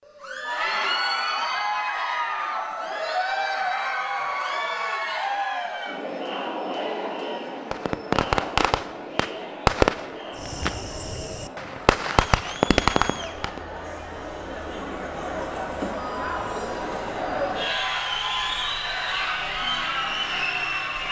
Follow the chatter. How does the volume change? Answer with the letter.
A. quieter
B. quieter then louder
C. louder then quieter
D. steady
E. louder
B.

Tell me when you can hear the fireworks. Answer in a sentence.
You can hear the fireworks from 7.7 to 13.6 s.